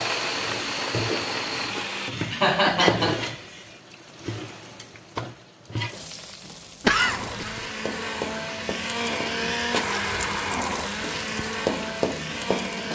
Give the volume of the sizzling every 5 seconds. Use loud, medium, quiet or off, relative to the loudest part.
loud, medium, loud.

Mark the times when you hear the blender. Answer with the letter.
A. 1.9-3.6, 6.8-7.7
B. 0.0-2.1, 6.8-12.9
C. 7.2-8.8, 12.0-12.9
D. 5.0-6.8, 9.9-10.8
B.